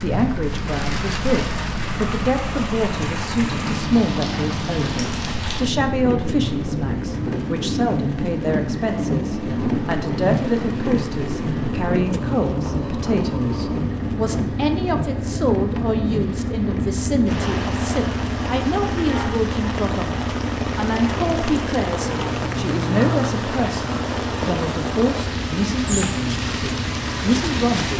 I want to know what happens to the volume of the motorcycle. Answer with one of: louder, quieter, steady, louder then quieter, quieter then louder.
steady.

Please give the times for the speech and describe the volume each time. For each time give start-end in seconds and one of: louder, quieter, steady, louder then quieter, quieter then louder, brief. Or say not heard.
0.0-27.9 steady.